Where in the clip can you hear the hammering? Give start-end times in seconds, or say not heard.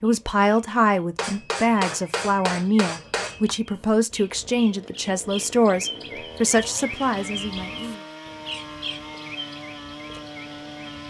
1.1-3.5.